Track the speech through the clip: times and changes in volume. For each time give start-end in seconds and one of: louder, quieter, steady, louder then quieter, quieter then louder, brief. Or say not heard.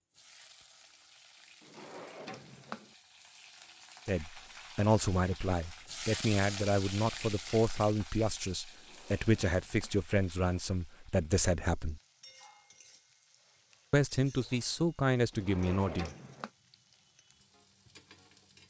4.0-12.0 steady
13.9-16.1 brief.